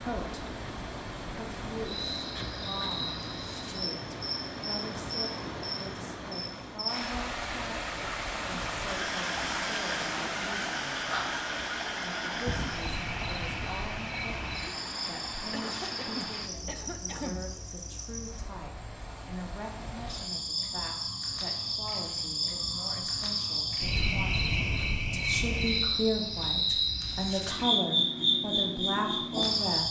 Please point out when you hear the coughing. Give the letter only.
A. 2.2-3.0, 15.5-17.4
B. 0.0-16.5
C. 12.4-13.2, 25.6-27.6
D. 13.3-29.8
A.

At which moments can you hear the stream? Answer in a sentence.
You can hear the stream from 0.0 to 16.5 s.